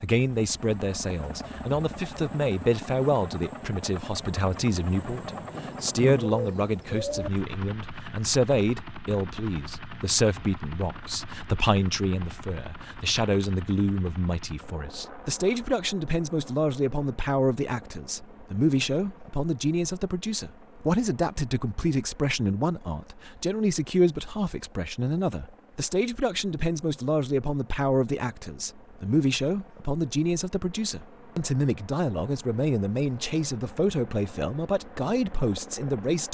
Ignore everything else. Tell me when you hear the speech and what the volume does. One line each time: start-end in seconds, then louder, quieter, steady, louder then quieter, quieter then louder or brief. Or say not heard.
0.0-36.2 steady.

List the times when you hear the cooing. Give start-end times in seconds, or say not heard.
5.5-7.3.